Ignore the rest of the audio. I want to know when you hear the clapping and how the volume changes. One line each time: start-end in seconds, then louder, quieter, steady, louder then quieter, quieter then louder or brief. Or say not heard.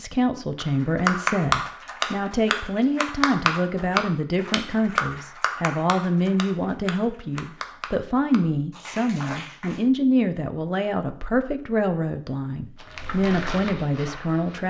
0.6-9.8 quieter.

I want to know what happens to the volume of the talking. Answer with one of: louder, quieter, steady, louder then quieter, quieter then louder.
steady.